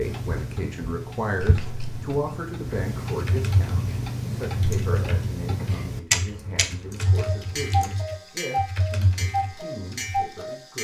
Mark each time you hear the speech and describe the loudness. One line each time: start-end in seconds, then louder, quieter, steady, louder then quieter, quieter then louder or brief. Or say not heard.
0.0-10.7 quieter.